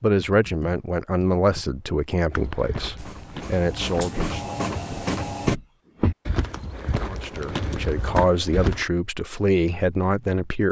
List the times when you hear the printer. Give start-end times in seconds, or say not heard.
3.0-5.6.